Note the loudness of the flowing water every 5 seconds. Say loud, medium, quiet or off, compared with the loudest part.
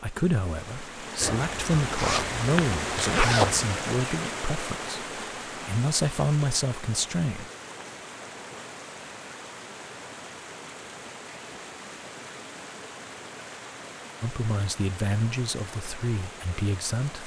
loud, medium, medium, medium.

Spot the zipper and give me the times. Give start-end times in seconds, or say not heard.
1.2-3.7.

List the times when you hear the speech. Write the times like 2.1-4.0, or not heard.
0.0-7.5, 14.2-17.2.